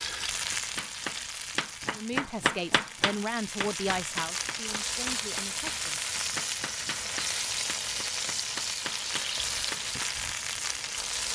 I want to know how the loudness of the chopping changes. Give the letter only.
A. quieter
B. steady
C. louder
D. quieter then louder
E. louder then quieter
A.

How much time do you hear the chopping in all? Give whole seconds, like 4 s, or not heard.
10 s.